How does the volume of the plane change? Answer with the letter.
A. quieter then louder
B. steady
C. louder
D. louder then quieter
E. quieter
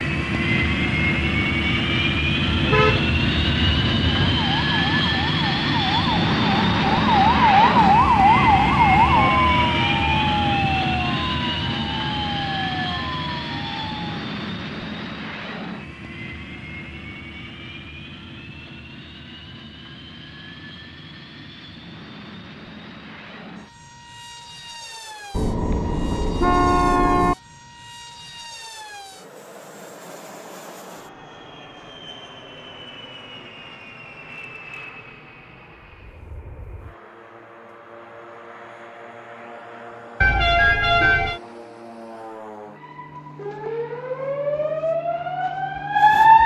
E.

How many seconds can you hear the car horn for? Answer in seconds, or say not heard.
5 s.